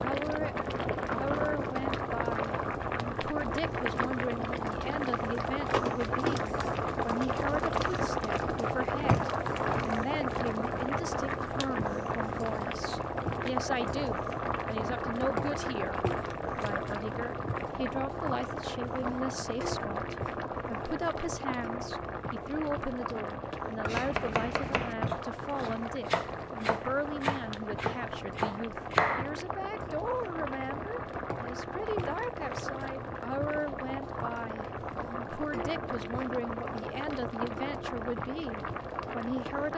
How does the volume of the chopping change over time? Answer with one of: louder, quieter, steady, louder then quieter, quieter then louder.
quieter then louder.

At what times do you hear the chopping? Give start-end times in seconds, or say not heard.
23.9-29.2.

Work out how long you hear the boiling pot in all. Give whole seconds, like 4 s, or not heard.
40 s.